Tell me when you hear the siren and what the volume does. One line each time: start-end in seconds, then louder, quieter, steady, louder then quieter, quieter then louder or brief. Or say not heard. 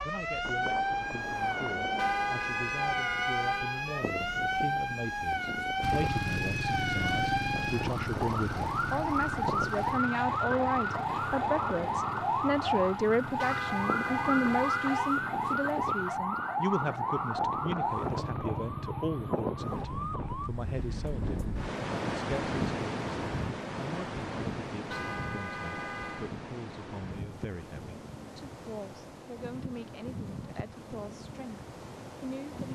0.0-20.5 steady.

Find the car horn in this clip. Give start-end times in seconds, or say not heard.
1.9-3.9, 13.3-15.2, 24.9-26.3.